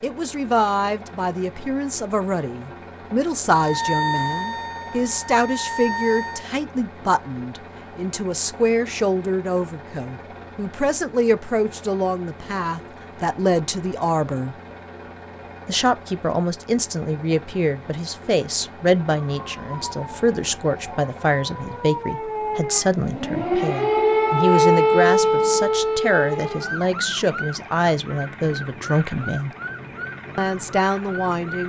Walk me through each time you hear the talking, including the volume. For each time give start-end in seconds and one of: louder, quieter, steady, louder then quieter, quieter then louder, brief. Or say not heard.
0.0-14.6 steady
15.7-29.6 steady
30.4-31.6 brief.